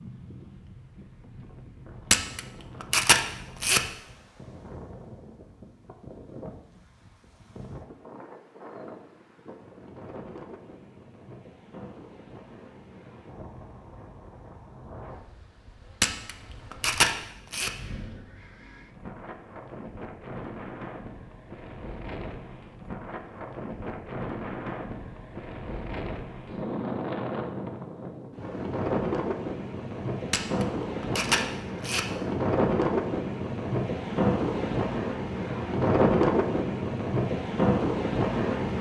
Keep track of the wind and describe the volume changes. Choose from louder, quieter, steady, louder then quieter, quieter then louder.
louder.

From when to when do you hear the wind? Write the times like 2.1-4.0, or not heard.
0.0-38.7.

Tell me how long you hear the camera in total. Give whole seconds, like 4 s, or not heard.
5 s.